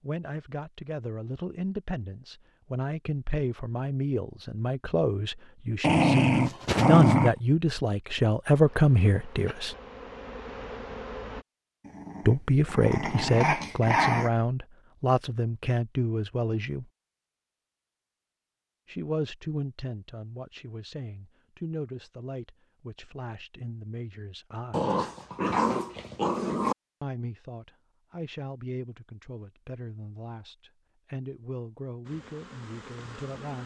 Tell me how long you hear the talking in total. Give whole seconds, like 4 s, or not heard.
27 s.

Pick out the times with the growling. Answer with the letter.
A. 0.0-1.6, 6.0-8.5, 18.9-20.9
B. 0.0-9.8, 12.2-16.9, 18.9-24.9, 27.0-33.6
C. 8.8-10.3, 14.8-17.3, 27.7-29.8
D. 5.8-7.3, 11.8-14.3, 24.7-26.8
D.